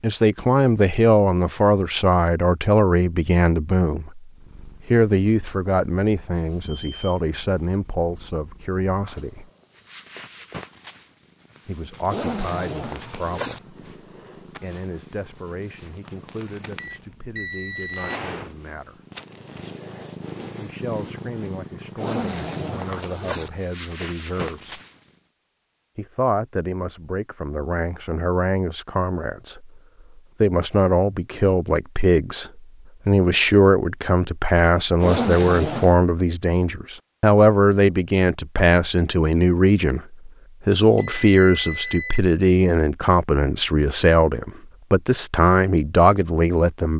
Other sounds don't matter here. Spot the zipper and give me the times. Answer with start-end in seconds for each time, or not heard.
12.1-13.6, 21.9-23.5, 35.0-36.0.